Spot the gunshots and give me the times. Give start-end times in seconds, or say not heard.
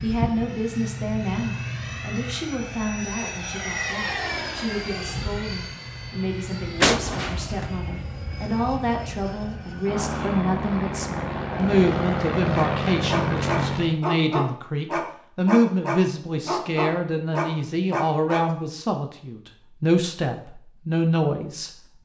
6.8-7.7.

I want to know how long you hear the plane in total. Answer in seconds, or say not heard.
14 s.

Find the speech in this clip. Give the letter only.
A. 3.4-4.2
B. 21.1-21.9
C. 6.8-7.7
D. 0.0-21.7
D.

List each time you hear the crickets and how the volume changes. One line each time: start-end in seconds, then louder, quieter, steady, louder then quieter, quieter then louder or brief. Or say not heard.
not heard.